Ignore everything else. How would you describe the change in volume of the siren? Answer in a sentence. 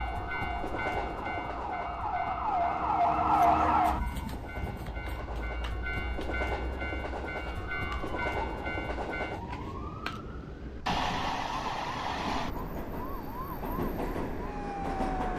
The volume of the siren goes down.